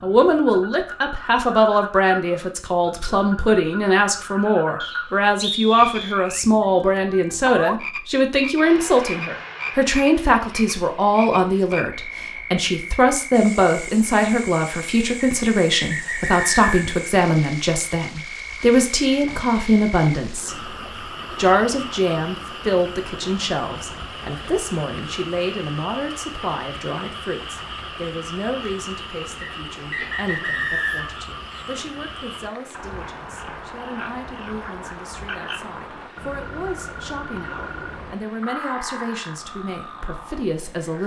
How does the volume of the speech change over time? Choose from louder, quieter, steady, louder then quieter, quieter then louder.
quieter.